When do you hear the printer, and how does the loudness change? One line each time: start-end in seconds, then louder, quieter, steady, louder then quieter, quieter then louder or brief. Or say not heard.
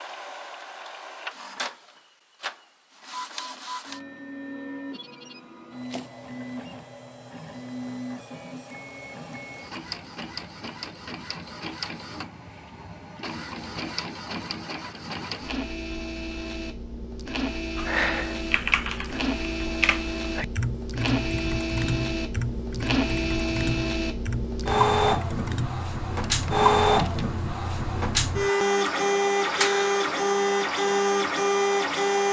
0.0-32.2 louder.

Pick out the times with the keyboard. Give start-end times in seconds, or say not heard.
17.8-27.4.